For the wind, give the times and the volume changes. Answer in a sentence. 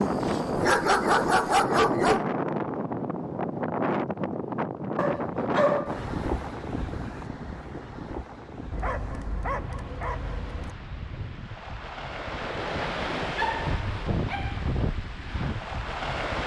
The wind can be heard from 0.0 to 16.4 s, getting quieter then louder.